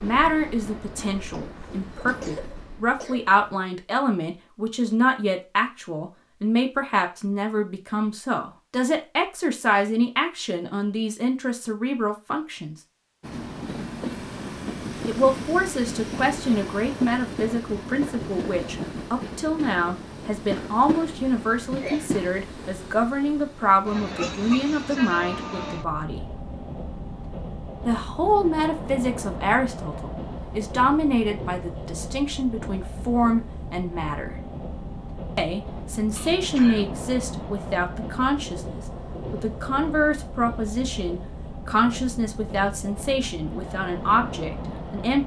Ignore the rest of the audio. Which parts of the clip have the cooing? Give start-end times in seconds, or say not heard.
not heard.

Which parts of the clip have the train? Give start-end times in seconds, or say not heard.
0.0-3.5, 13.2-45.2.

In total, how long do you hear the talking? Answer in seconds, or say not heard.
40 s.